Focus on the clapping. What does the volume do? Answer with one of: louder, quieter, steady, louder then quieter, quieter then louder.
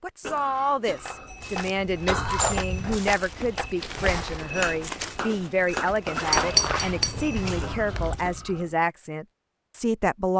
quieter.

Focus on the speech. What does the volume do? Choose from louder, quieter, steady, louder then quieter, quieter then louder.
steady.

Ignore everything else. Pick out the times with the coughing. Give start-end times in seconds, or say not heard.
0.2-2.6, 7.6-8.8.